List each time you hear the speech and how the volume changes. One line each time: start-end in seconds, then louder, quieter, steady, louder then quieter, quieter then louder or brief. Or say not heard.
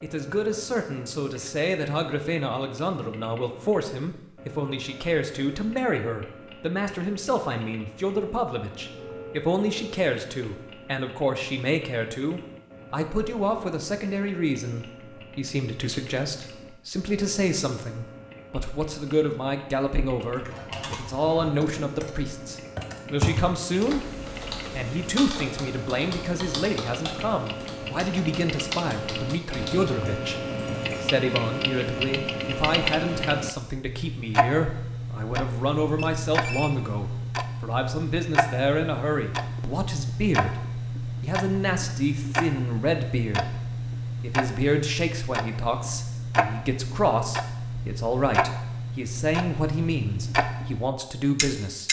0.0-43.5 steady
44.2-51.8 steady.